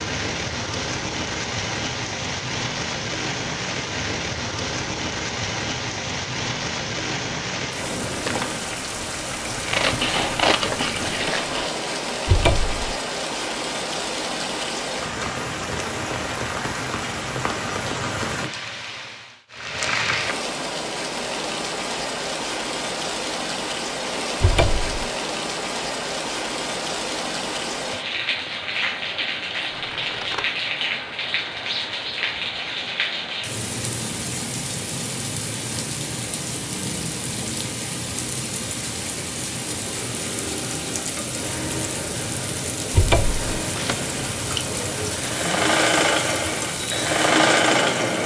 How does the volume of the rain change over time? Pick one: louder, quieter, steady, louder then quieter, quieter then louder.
steady.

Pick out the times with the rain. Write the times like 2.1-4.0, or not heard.
0.0-48.2.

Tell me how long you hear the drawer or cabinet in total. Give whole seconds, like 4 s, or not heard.
2 s.